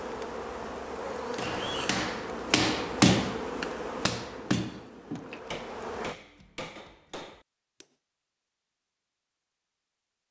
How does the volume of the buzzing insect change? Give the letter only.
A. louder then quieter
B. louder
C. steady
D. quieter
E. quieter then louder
D.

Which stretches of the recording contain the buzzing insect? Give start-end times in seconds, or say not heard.
0.0-6.2.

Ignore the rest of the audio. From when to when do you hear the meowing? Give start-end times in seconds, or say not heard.
1.4-2.0.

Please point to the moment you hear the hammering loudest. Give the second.
3 s.